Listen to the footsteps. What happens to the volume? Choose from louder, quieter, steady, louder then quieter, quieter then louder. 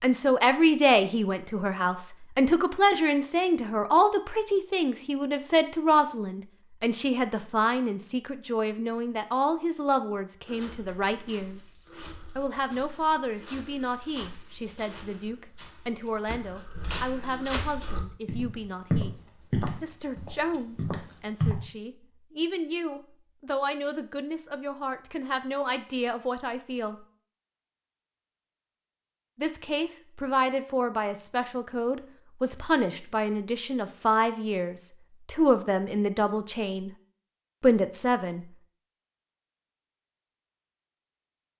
louder.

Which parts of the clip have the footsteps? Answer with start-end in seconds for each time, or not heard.
10.4-21.6.